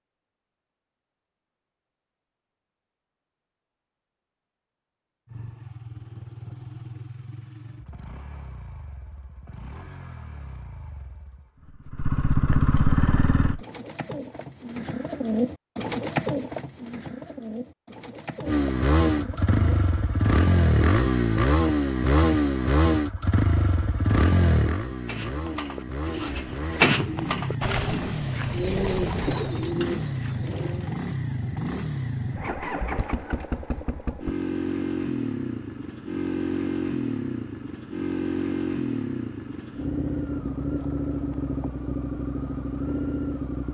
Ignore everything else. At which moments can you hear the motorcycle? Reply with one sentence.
The motorcycle can be heard from 5.2 to 13.7 s and from 18.4 to 43.6 s.